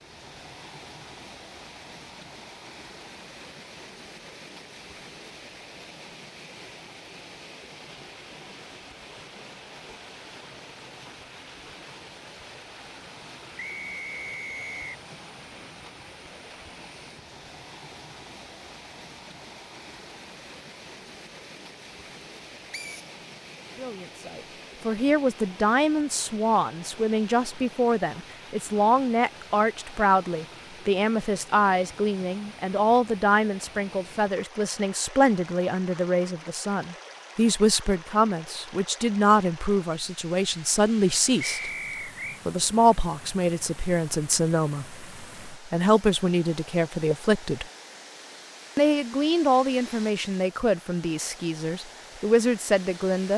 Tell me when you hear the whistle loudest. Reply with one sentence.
The loudest moment of the whistle is at 42 seconds.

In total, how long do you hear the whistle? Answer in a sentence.
The whistle can be heard for 3 seconds in total.